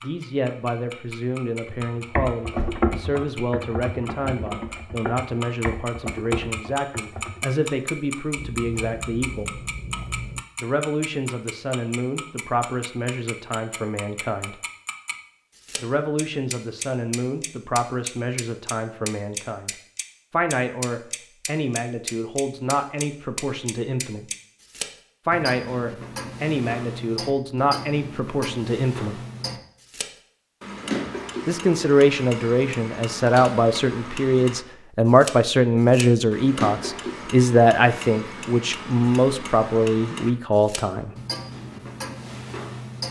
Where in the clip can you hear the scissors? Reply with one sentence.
The scissors can be heard from 8.3 to 10.4 s.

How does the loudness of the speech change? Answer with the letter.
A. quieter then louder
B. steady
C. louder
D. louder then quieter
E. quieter
C.